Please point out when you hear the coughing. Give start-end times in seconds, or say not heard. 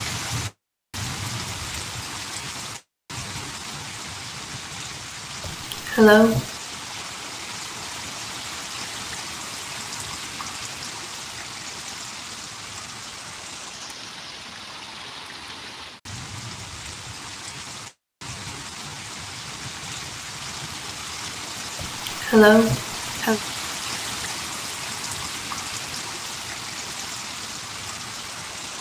5.5-6.5, 21.8-23.4.